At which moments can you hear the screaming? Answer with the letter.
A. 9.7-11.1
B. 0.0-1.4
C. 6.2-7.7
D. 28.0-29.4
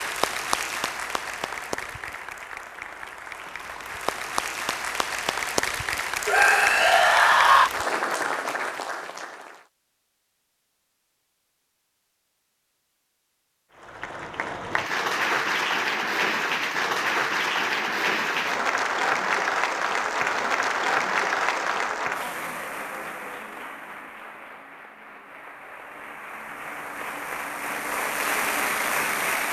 C.